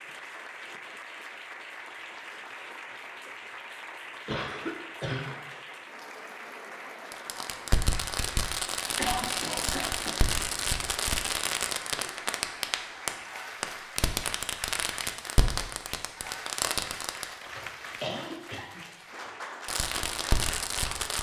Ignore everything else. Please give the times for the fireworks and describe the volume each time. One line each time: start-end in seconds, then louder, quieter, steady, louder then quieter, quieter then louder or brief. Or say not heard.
7.1-17.2 steady
19.6-21.1 brief.